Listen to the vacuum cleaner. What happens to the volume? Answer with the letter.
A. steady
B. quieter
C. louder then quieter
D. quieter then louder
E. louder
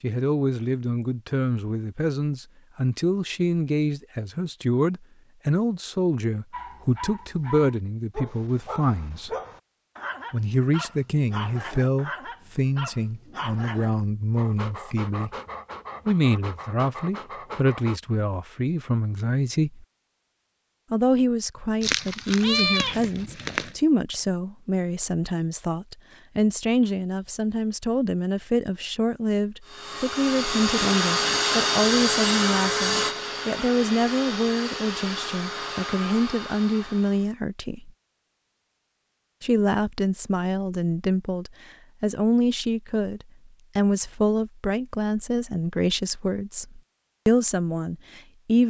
B.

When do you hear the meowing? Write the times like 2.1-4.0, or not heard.
21.8-23.8.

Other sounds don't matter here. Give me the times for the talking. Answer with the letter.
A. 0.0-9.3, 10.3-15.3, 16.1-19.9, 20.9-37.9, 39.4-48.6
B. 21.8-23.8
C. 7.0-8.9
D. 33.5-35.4
A.